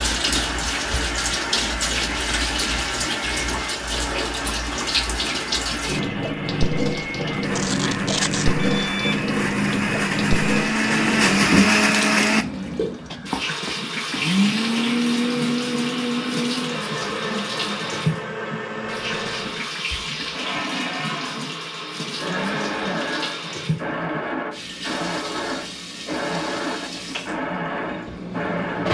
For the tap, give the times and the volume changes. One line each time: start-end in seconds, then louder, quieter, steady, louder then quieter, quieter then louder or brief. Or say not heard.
0.0-28.8 quieter.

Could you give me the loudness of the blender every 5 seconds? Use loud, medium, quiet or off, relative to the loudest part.
quiet, medium, loud, medium, medium, medium.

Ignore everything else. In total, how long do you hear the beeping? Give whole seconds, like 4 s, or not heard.
2 s.